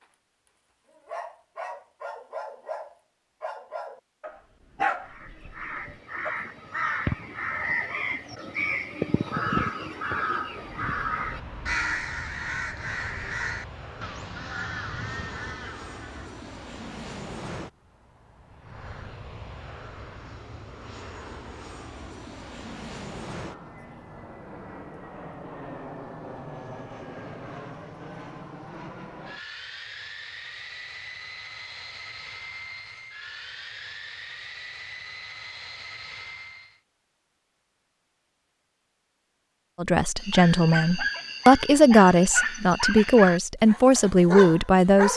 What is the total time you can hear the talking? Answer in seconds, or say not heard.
5 s.